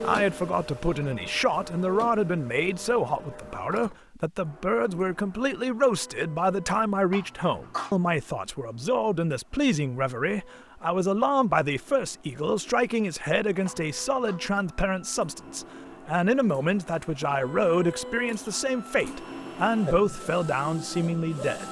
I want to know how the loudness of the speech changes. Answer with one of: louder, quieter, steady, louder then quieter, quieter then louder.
steady.